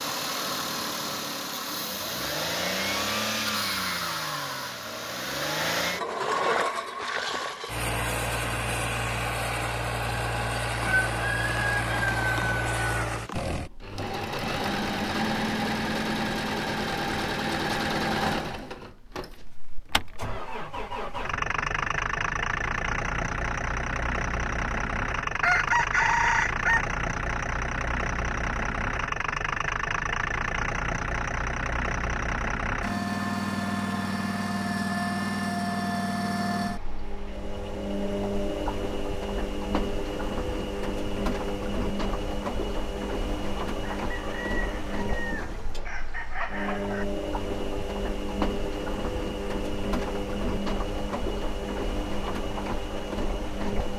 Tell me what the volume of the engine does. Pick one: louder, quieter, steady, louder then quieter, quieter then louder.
steady.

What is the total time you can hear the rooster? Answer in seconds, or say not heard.
7 s.